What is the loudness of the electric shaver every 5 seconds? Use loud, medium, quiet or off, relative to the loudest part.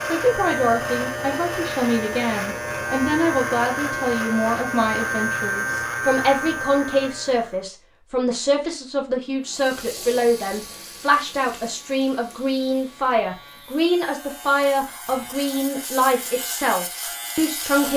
loud, loud, quiet, medium.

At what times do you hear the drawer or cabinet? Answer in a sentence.
The drawer or cabinet can't be heard in this clip.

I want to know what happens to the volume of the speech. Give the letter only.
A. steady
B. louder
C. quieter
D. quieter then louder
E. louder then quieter
A.